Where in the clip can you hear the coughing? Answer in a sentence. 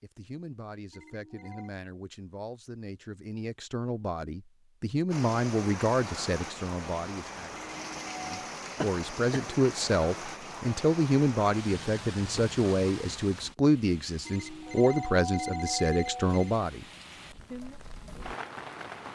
The coughing can be heard from 8.8 to 9.4 s.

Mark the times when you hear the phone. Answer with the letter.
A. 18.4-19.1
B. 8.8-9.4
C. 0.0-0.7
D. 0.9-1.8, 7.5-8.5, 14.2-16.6
D.